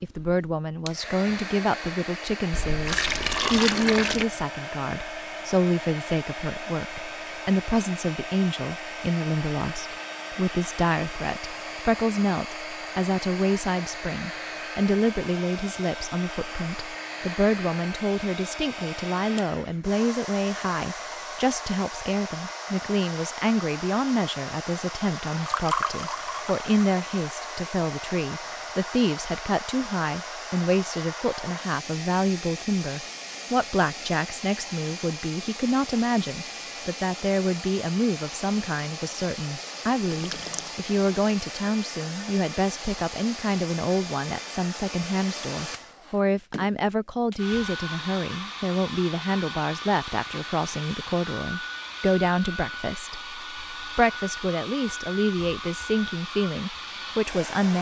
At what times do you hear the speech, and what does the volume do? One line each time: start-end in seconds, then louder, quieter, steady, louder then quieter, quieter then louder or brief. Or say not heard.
0.0-57.7 steady.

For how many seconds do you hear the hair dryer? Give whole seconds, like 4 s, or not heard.
58 s.